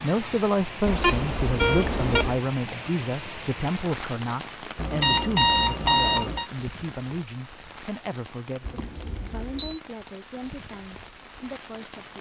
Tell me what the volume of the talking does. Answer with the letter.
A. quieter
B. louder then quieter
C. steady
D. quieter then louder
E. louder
A.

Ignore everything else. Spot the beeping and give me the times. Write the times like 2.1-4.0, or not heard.
0.8-2.4, 4.8-6.5, 8.6-9.8.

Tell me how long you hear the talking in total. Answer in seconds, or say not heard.
12 s.